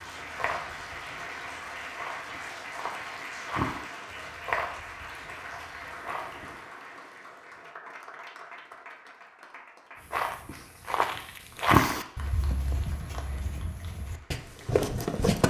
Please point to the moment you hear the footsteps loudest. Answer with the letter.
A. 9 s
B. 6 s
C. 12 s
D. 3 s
C.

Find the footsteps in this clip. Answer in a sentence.
You can hear the footsteps from 0.0 to 6.5 s and from 10.1 to 15.4 s.